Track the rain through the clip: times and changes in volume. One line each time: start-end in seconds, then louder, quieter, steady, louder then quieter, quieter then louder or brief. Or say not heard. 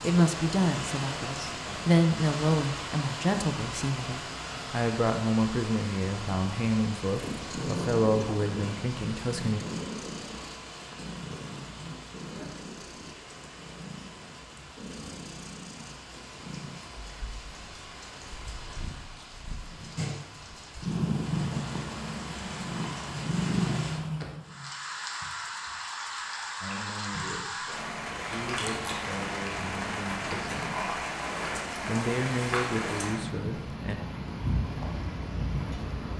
0.0-36.1 quieter then louder.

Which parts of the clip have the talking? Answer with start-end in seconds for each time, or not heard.
0.0-9.6, 26.6-30.9, 31.9-34.0.